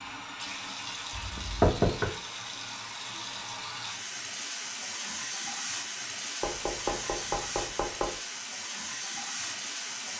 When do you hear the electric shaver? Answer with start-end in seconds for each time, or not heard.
not heard.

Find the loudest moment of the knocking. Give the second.
2 s.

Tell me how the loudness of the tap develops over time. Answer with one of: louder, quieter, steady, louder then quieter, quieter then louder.
steady.